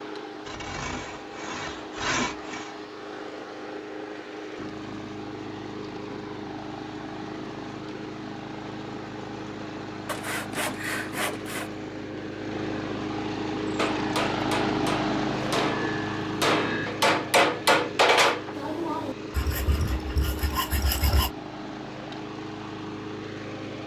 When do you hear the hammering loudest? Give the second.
18 s.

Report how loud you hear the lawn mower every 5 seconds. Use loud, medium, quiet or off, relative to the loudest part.
medium, medium, loud, loud, medium.